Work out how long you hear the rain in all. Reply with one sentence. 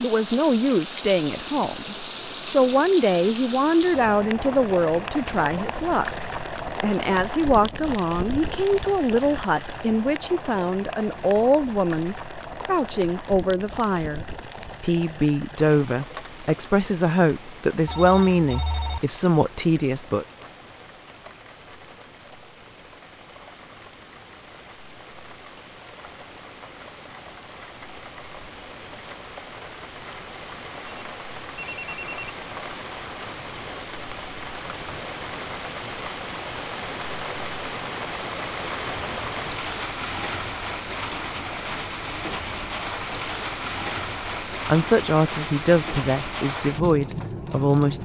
You can hear the rain for 48 seconds altogether.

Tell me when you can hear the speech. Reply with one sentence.
The speech can be heard from 0.0 to 20.2 s and from 44.5 to 47.9 s.